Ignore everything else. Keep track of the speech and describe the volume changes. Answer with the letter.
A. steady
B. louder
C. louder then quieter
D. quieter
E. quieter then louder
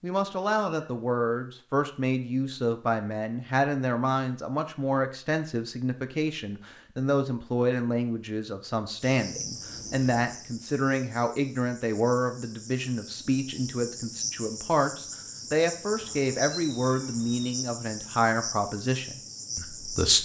A.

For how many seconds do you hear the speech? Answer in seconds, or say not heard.
20 s.